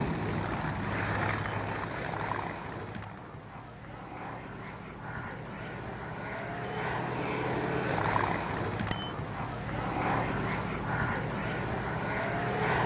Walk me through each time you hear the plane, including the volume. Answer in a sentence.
The plane can be heard from 0.0 to 12.8 s, getting quieter then louder.